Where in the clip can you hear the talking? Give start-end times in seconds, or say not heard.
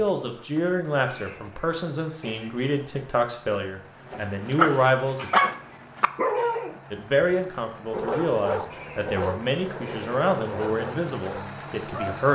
0.0-5.3, 6.9-12.3.